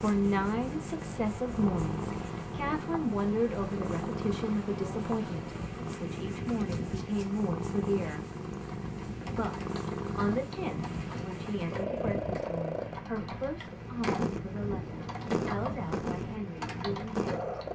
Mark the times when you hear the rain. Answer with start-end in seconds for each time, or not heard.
0.0-17.7.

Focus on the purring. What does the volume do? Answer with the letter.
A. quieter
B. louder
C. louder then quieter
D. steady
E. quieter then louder
D.